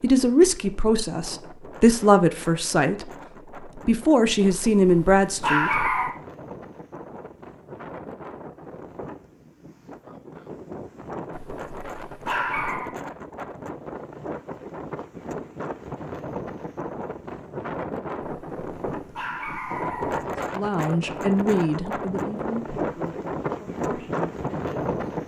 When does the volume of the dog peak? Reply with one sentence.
The volume of the dog peaks at 6 seconds.